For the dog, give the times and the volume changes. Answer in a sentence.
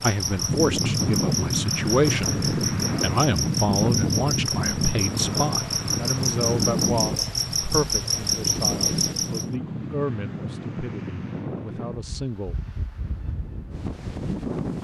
The dog can't be heard in this clip.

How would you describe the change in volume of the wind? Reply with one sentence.
The loudness of the wind goes down.